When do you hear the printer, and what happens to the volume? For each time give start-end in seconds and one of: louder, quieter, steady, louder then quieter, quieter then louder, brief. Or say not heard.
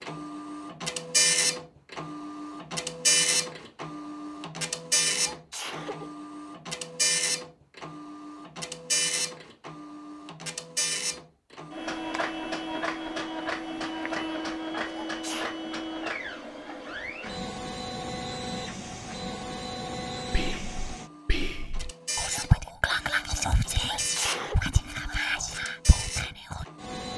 0.0-27.1 quieter.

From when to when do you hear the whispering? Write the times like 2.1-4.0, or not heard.
20.3-26.6.